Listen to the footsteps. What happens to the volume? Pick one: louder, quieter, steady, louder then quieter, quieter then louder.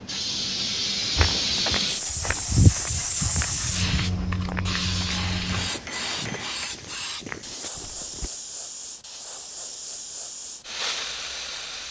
quieter.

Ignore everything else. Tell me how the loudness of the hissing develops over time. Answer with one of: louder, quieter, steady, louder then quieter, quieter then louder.
quieter.